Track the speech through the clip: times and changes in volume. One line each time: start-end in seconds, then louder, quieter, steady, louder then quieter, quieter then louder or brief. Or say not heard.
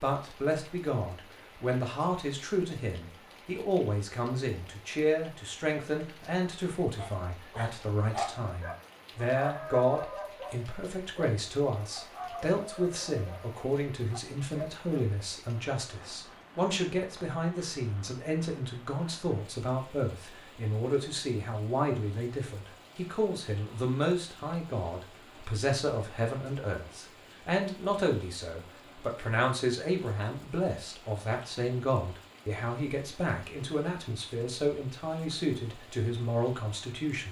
0.0-37.2 steady.